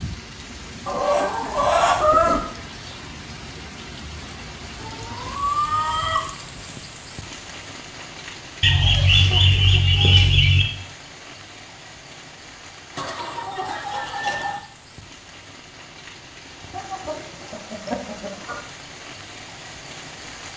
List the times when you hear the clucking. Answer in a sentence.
The clucking can be heard from 0.8 to 2.4 s, from 4.8 to 6.2 s, from 8.6 to 10.7 s, from 12.9 to 14.6 s and from 16.7 to 18.6 s.